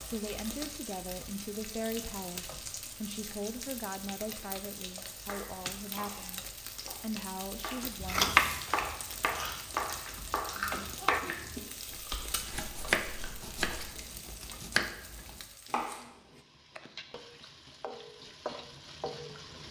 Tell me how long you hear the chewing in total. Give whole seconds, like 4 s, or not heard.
6 s.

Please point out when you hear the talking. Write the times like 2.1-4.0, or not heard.
0.0-8.3.